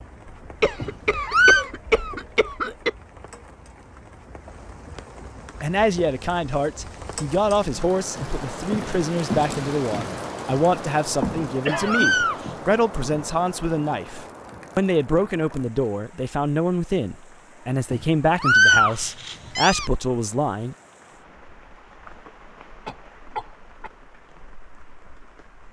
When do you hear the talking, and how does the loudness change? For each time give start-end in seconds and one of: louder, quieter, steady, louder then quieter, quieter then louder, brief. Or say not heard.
5.6-20.8 steady.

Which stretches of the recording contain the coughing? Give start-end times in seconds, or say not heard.
0.6-2.9, 11.7-12.1, 22.9-23.9.